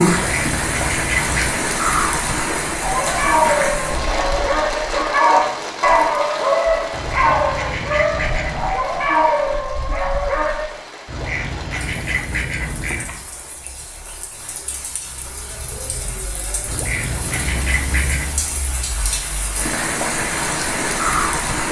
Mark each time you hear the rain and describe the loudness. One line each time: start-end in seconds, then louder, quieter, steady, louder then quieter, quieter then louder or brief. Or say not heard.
0.0-21.6 quieter then louder.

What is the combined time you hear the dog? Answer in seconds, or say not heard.
8 s.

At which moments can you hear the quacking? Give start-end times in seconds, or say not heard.
0.1-1.6, 6.9-8.8, 11.1-13.2, 16.6-18.4.